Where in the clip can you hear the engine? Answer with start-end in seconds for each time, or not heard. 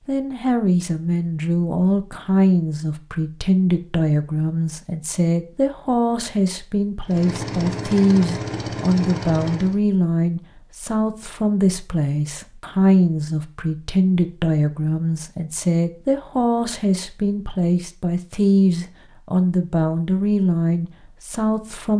7.0-9.8.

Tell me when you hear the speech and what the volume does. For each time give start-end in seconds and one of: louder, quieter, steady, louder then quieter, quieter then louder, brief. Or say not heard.
0.1-21.9 steady.